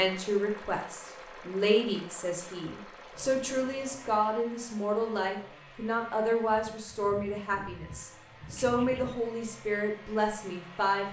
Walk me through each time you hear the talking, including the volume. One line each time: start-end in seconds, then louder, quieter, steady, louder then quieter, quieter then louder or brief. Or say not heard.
0.0-11.0 steady.